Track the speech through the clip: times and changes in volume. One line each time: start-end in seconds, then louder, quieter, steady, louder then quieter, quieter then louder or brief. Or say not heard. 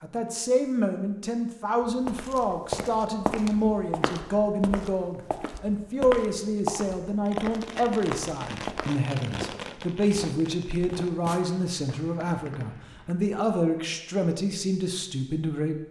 0.0-15.8 steady.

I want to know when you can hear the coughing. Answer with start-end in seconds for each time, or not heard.
not heard.